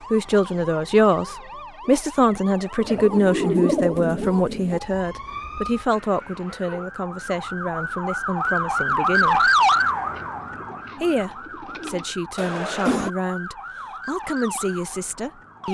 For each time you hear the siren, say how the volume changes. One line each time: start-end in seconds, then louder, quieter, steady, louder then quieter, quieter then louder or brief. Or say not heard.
0.0-15.6 louder then quieter.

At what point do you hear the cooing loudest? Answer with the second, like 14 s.
4 s.